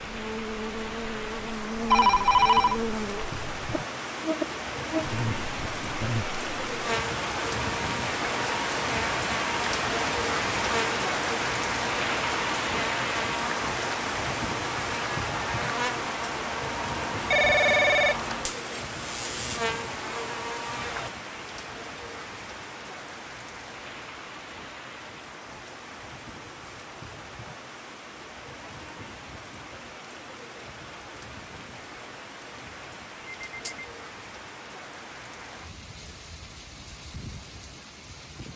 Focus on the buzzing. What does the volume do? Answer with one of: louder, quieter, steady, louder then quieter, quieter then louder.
steady.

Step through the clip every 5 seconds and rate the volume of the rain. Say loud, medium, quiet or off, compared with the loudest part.
medium, loud, loud, medium, medium, quiet, quiet, quiet.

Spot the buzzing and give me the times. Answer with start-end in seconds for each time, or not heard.
0.0-21.1.